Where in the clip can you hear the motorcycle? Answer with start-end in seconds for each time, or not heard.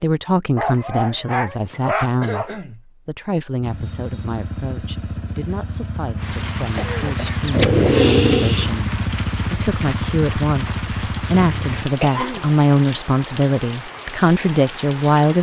3.6-11.8.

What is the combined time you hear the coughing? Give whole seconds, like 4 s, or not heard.
3 s.